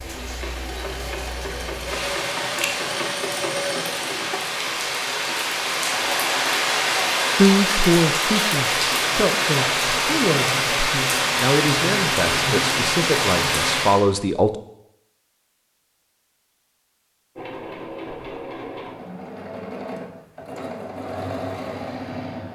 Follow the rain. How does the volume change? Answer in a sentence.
The loudness of the rain goes up.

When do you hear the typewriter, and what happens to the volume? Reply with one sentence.
You can't hear the typewriter here.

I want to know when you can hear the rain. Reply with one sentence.
The rain can be heard from 0.0 to 14.0 s.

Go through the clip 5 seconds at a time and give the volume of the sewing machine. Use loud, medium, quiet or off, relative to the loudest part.
loud, loud, off, loud, loud.